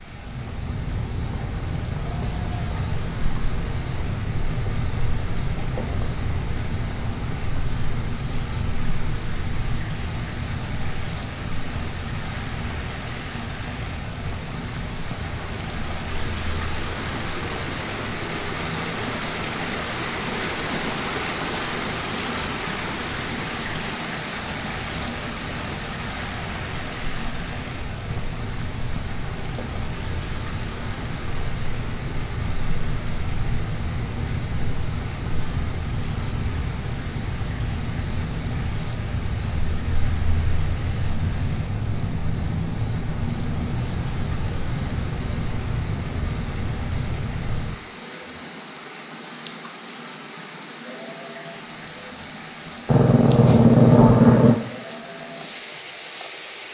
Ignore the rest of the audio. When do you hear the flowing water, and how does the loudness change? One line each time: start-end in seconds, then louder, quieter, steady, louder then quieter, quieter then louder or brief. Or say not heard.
0.0-56.6 louder then quieter.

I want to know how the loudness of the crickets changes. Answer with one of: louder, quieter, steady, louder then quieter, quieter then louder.
quieter then louder.